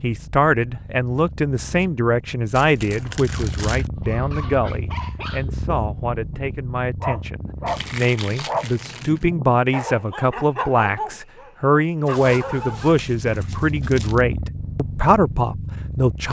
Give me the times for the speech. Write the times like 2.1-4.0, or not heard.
0.0-16.2.